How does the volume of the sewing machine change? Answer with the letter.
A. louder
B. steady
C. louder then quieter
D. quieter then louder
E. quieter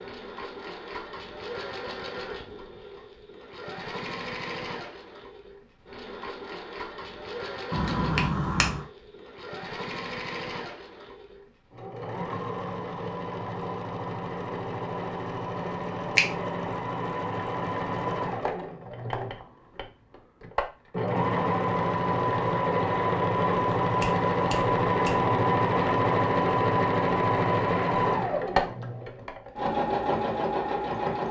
A.